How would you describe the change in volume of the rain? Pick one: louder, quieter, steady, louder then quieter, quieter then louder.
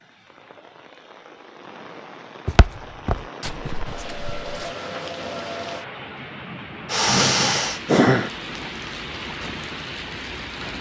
louder.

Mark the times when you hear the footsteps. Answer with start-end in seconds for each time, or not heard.
2.5-4.8.